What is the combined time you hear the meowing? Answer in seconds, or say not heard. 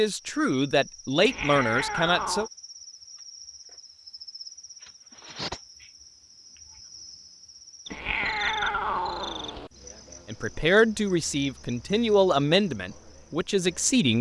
3 s.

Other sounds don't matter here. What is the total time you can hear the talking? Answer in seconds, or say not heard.
6 s.